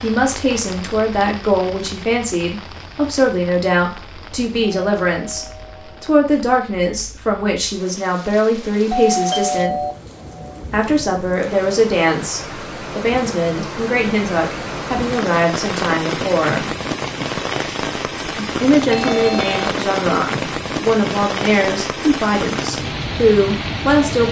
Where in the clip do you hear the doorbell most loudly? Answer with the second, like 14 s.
9 s.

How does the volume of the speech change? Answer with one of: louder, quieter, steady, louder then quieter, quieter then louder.
steady.